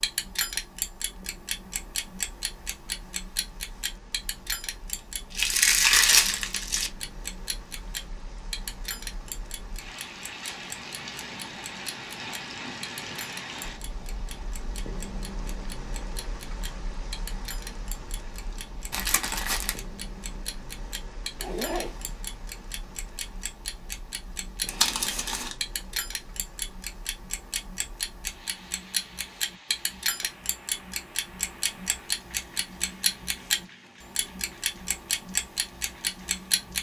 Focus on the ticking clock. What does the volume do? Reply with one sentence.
The volume of the ticking clock goes down, then up.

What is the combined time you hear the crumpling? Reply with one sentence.
You can hear the crumpling for 3 seconds altogether.